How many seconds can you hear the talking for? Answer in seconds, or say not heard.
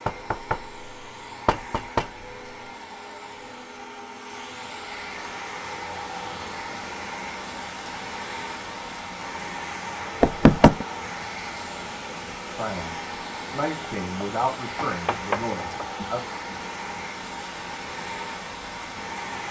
4 s.